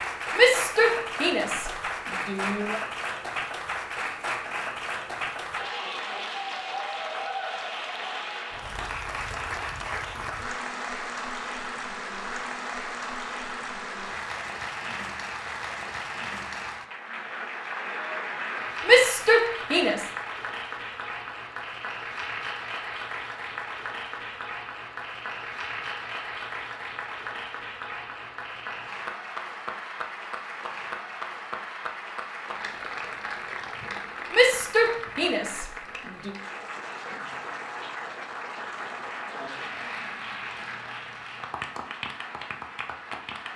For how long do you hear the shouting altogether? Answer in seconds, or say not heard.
6 s.